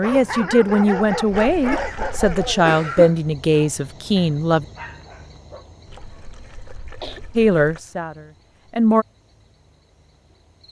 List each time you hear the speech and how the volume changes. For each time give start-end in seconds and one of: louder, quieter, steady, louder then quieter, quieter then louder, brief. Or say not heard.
0.0-4.7 steady
7.3-9.1 brief.